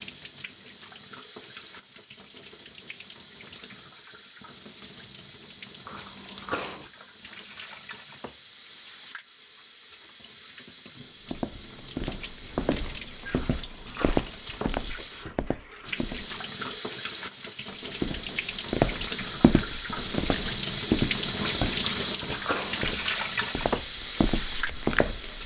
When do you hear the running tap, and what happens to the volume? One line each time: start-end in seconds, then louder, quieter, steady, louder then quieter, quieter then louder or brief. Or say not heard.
0.0-25.4 louder.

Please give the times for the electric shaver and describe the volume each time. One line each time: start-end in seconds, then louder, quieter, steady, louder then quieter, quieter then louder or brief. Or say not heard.
not heard.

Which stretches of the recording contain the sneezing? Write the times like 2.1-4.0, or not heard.
5.8-6.9, 13.3-14.3, 21.8-22.9.